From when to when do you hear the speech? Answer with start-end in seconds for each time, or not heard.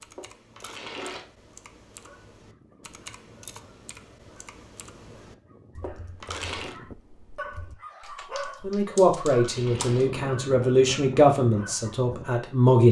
8.6-12.8.